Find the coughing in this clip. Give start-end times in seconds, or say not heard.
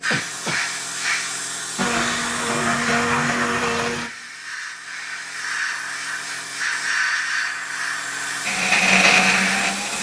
0.1-0.6.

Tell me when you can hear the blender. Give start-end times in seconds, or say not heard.
1.8-4.1, 8.4-9.9.